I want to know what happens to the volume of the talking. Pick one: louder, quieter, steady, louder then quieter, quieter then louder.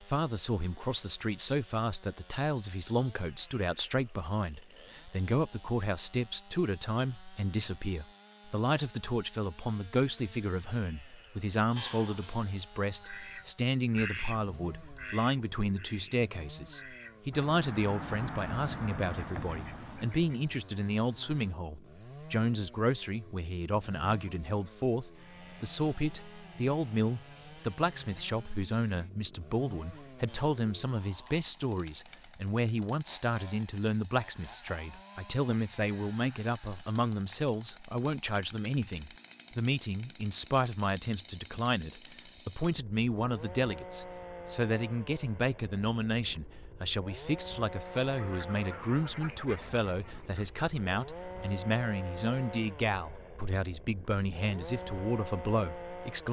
steady.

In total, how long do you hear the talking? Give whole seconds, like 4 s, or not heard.
56 s.